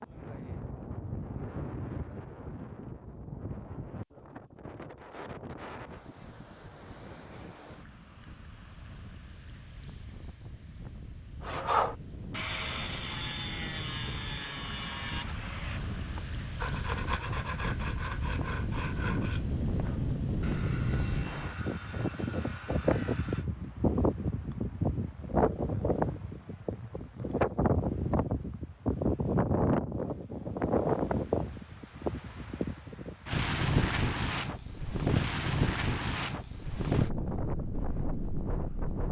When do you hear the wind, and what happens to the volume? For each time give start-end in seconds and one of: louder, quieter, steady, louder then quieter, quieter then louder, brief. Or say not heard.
0.0-39.0 louder.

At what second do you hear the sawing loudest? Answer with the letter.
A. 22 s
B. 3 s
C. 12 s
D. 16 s
C.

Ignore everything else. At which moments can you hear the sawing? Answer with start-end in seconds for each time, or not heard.
11.4-23.4.